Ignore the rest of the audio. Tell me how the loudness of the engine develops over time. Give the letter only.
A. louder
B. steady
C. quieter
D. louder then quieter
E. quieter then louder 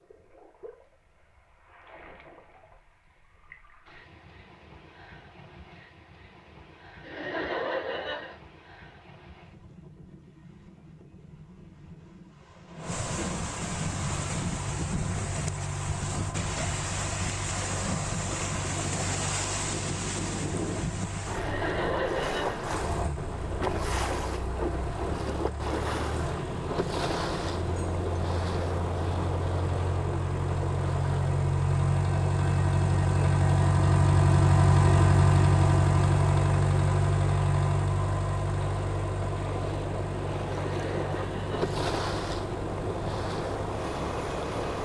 D.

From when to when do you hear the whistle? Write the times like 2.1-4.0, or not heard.
not heard.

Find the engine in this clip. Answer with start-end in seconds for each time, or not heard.
13.8-44.8.